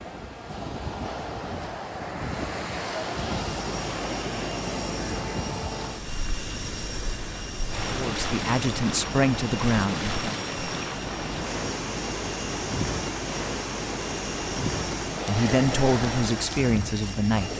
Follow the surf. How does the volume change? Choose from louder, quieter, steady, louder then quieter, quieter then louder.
steady.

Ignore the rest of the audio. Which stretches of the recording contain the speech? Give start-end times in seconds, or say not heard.
7.9-10.4, 15.2-17.5.